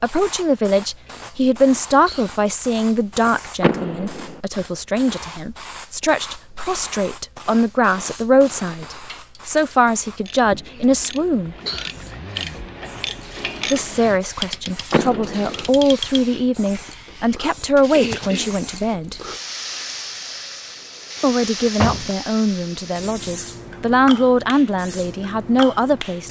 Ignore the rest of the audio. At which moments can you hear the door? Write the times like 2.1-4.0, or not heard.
3.6-4.4, 14.9-15.7, 21.1-22.1.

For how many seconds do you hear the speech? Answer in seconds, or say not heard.
22 s.